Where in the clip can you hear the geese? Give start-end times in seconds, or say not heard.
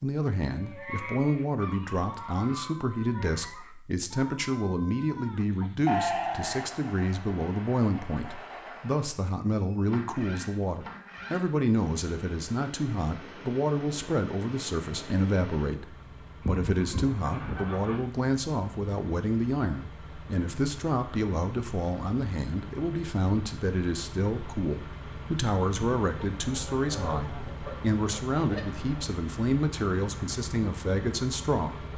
0.8-3.8, 16.4-18.1, 26.4-29.1.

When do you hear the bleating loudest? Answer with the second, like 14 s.
6 s.